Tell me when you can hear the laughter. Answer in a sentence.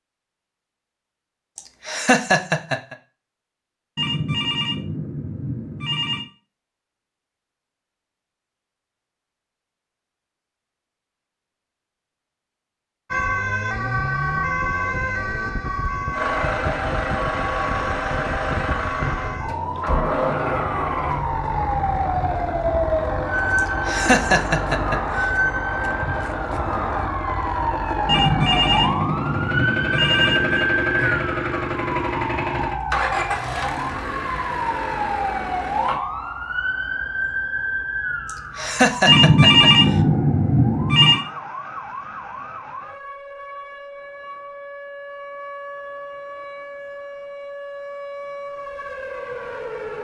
The laughter can be heard from 1.6 to 3.0 s, from 23.6 to 25.0 s and from 38.2 to 39.7 s.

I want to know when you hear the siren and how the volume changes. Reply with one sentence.
You can hear the siren from 13.1 to 49.9 s, getting quieter.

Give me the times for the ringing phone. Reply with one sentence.
The ringing phone can be heard from 4.0 to 6.2 s, from 28.1 to 30.6 s and from 39.0 to 41.2 s.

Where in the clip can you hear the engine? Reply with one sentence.
You can hear the engine from 16.1 to 36.0 s.